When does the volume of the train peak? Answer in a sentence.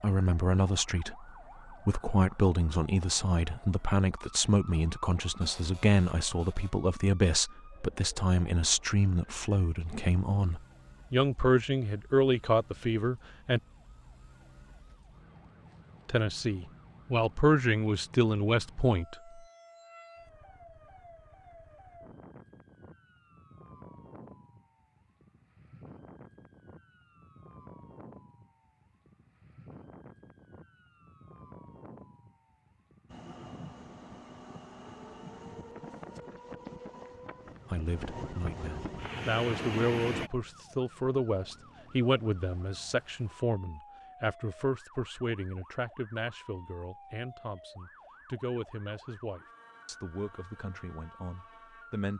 The volume of the train peaks at 40 seconds.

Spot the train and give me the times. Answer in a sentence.
The train can be heard from 33.0 to 40.3 s.